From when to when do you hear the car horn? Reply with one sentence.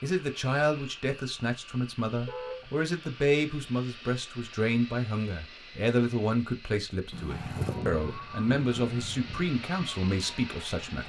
The car horn can be heard from 2.2 to 2.7 s and from 7.1 to 7.8 s.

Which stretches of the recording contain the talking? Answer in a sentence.
You can hear the talking from 0.0 to 11.0 s.